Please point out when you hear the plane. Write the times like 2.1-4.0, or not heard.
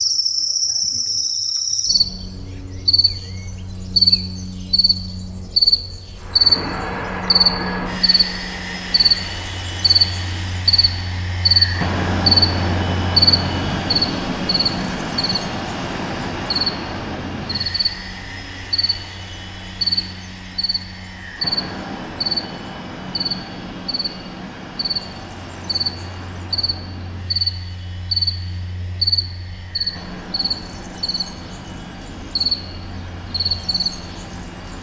6.2-34.7.